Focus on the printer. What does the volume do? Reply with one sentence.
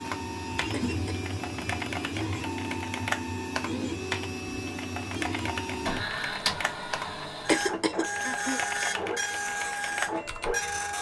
The loudness of the printer stays about the same.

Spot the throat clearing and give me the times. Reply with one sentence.
You can hear the throat clearing from 0.7 to 1.3 s and from 7.5 to 8.6 s.